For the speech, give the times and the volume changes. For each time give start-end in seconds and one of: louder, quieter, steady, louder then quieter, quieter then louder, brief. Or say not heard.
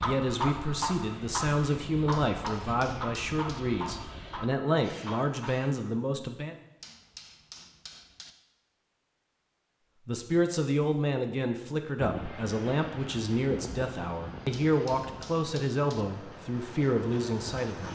0.0-6.5 steady
10.1-17.9 steady.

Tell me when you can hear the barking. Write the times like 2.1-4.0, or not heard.
0.0-5.9.